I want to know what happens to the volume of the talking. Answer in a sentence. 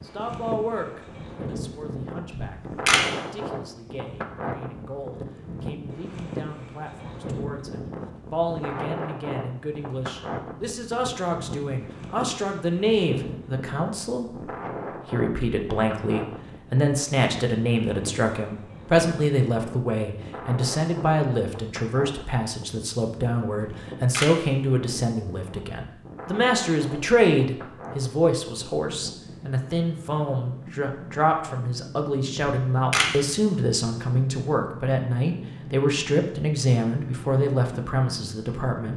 The loudness of the talking goes up.